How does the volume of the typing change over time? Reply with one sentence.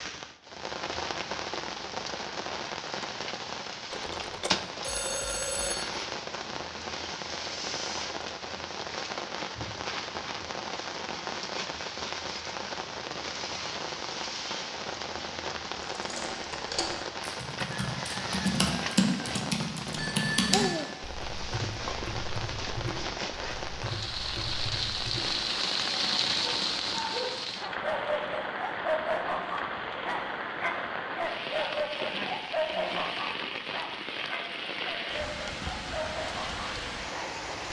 The volume of the typing goes up, then down.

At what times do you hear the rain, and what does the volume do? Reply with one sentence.
You can hear the rain from 0.0 to 37.6 s, at a steady volume.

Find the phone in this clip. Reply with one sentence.
You can hear the phone from 3.9 to 5.8 s and from 19.9 to 20.6 s.